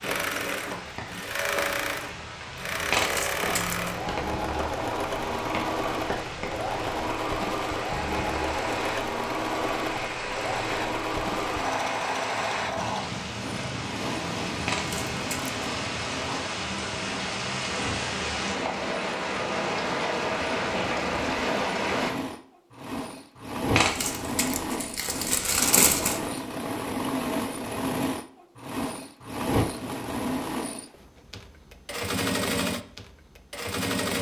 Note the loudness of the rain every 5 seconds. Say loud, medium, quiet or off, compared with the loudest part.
medium, medium, medium, loud, loud, off, off.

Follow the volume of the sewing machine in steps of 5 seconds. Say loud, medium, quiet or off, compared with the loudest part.
loud, loud, loud, medium, loud, loud, loud.